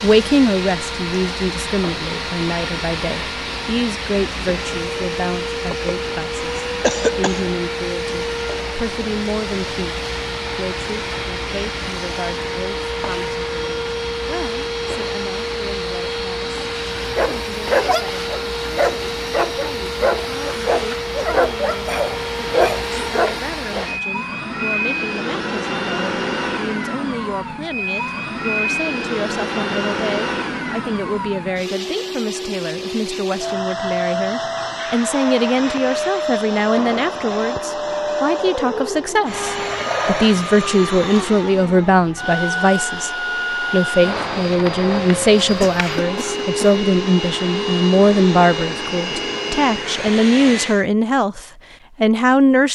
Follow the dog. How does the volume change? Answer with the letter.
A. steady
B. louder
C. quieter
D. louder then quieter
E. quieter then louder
A.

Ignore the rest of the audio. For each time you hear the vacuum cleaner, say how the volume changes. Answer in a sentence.
You can hear the vacuum cleaner from 0.0 to 50.9 s, at a steady volume.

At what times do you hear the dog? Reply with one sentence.
The dog can be heard from 17.0 to 23.9 s.